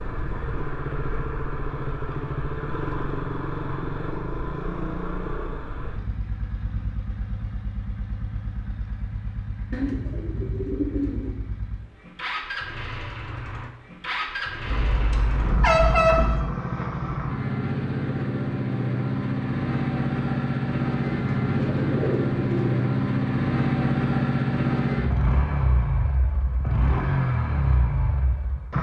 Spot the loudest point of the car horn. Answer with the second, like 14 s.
16 s.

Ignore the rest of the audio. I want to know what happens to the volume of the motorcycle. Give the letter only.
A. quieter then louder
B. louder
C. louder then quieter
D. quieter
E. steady
A.